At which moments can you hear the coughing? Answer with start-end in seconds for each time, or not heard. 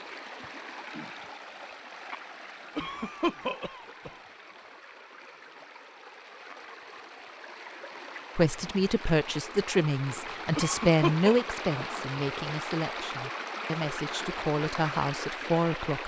2.8-4.1, 10.6-11.4.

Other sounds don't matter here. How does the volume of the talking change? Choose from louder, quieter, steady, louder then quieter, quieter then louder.
quieter then louder.